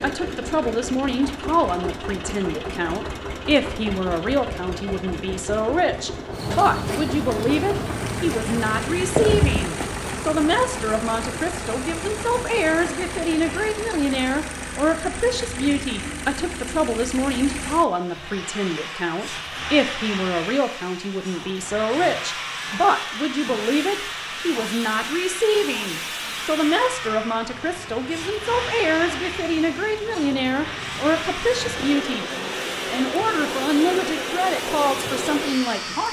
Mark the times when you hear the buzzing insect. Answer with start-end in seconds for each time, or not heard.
6.3-12.8, 27.4-36.0.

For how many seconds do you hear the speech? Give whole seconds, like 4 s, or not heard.
35 s.